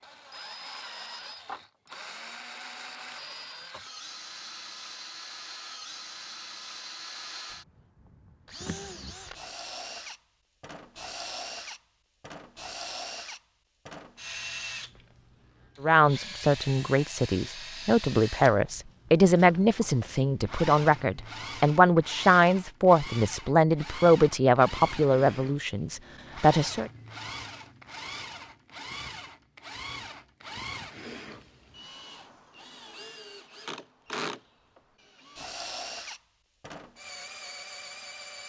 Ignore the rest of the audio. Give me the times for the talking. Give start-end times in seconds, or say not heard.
15.8-26.9.